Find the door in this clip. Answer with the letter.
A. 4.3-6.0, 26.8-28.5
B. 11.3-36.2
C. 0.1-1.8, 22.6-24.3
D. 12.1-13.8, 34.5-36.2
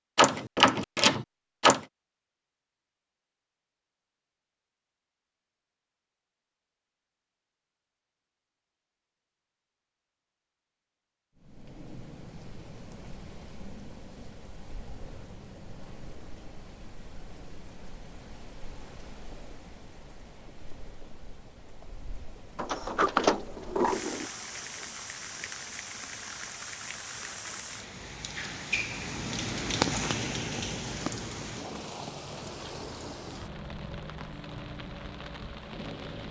C.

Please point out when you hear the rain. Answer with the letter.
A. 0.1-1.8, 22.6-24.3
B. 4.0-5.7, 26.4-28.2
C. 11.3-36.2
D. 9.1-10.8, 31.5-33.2
C.